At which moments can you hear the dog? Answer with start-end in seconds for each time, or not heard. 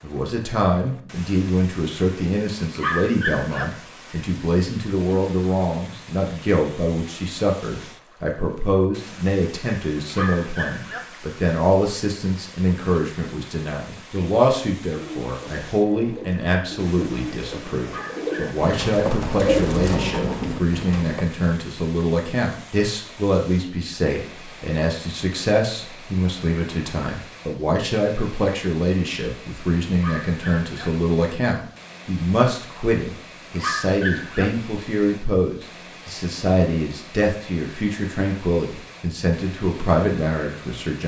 2.8-3.6, 10.1-11.0, 17.8-18.6, 29.9-30.9, 33.5-34.5.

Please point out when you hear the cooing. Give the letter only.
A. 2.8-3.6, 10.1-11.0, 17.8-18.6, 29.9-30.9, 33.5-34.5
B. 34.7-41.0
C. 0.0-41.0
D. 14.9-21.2
D.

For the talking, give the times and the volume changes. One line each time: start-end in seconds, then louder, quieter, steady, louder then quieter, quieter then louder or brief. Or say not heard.
0.0-41.0 steady.